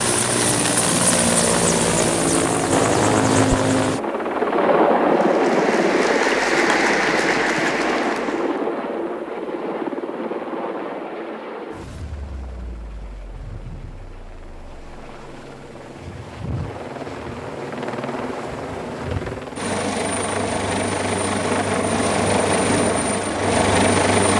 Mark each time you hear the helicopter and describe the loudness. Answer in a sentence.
You can hear the helicopter from 0.0 to 24.3 s, getting quieter then louder.